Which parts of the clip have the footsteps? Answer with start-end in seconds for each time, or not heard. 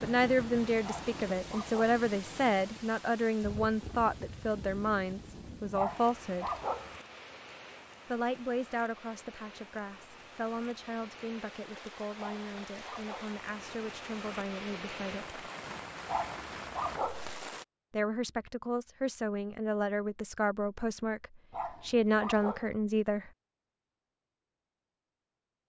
not heard.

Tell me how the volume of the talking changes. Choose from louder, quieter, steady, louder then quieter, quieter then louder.
quieter then louder.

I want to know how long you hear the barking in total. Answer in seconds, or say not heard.
6 s.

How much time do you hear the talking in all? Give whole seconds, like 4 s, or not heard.
19 s.